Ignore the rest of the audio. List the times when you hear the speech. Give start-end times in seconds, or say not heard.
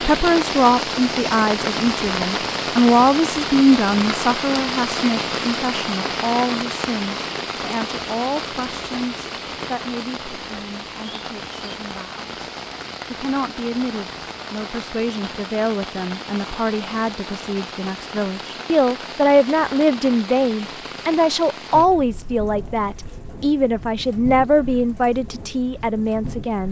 0.0-12.5, 13.1-26.6.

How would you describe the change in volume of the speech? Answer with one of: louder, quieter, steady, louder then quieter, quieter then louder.
quieter then louder.